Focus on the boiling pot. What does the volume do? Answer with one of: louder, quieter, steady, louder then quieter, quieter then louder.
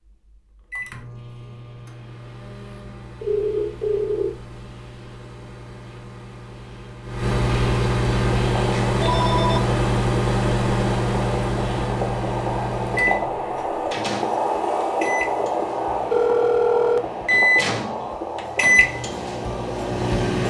louder then quieter.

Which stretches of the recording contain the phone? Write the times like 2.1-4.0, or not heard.
3.2-4.3, 8.6-9.6, 16.1-17.0.